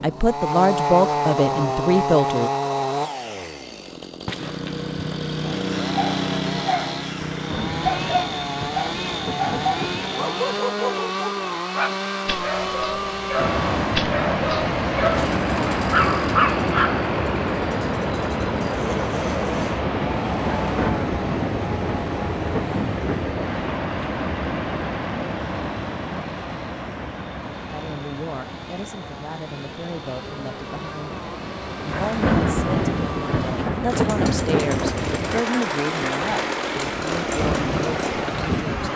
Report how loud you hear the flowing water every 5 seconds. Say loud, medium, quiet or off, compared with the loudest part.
off, off, loud, loud, loud, medium, medium, loud.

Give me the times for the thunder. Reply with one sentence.
The thunder can be heard from 7.3 to 10.2 s, from 20.4 to 23.6 s and from 31.9 to 35.2 s.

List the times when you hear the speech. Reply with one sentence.
The speech can be heard from 0.0 to 2.5 s and from 27.7 to 38.9 s.